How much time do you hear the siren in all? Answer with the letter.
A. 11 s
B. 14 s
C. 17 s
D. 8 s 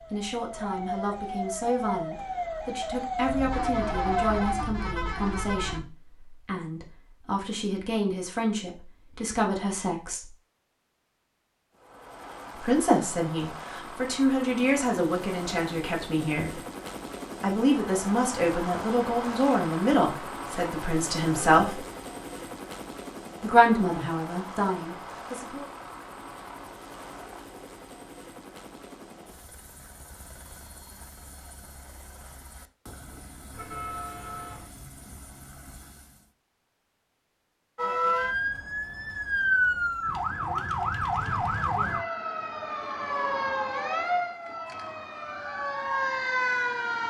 B.